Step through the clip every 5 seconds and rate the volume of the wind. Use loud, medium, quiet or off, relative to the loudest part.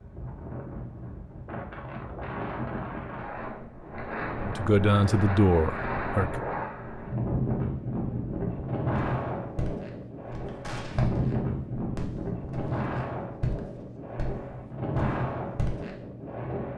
medium, loud, loud, loud.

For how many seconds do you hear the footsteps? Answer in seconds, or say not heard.
7 s.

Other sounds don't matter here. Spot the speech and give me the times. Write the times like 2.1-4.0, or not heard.
4.4-6.3.